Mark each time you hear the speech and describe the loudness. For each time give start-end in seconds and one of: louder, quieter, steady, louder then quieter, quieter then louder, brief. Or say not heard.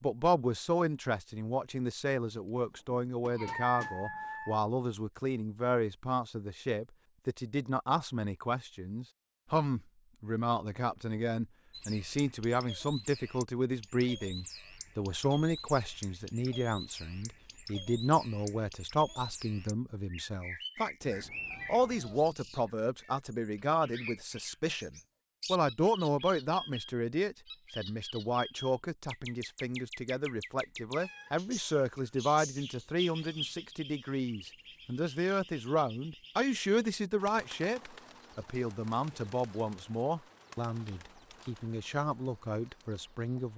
0.0-43.5 steady.